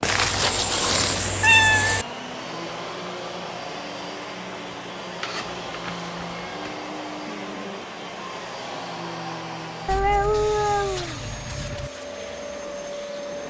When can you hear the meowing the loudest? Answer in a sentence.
The loudest moment of the meowing is at 2 seconds.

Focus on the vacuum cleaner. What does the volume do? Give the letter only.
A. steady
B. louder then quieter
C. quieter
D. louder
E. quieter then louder
A.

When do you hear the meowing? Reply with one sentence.
You can hear the meowing from 0.0 to 2.0 s, from 5.2 to 6.7 s and from 9.8 to 11.9 s.